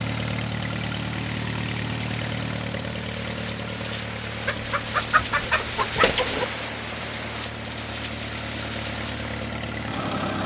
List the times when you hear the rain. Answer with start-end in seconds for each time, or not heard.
0.0-10.4.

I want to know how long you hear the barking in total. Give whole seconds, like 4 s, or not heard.
not heard.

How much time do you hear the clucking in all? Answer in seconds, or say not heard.
2 s.